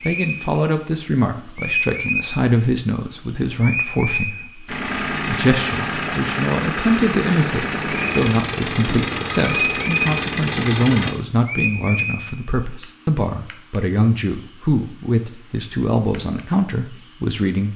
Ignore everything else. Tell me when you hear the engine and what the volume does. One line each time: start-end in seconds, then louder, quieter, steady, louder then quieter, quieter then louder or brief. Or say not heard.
4.7-11.2 steady.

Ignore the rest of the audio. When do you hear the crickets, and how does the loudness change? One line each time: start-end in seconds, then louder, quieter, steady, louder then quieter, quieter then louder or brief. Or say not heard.
0.0-17.7 steady.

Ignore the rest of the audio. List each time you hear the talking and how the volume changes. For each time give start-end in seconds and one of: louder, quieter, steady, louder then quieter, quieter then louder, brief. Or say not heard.
0.0-17.7 steady.